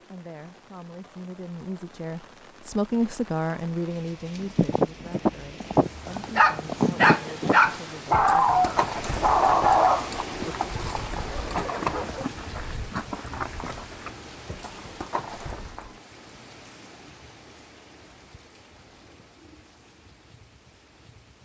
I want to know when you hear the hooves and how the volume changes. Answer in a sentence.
The hooves can be heard from 4.4 to 16.0 s, getting quieter.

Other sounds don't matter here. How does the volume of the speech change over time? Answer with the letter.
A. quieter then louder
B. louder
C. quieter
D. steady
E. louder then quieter
E.